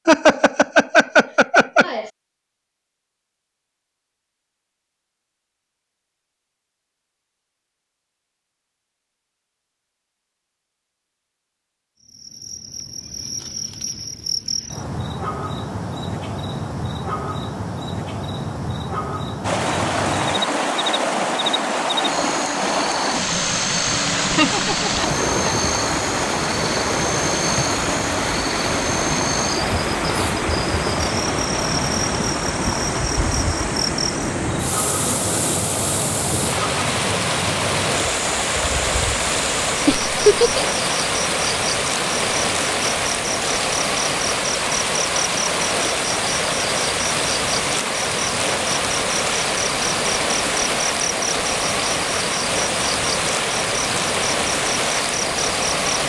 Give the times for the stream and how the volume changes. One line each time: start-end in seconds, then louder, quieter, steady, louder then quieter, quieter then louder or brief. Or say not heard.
19.4-56.0 steady.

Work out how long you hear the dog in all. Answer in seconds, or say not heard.
not heard.